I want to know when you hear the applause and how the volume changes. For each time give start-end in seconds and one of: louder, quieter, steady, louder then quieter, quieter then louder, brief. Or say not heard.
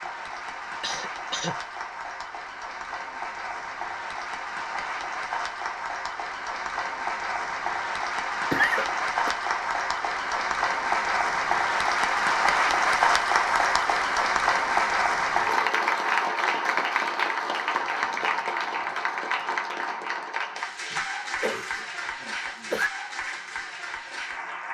0.0-24.6 louder then quieter.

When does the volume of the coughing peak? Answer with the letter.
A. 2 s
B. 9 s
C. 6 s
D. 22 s
B.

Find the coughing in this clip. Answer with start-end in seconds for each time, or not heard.
0.8-1.6, 8.5-9.3, 20.9-22.9.